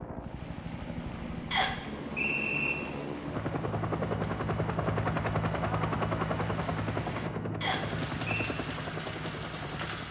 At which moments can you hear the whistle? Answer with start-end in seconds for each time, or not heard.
1.5-2.8, 7.6-8.5.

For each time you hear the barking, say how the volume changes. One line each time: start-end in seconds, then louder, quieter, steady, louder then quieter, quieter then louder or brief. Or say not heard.
not heard.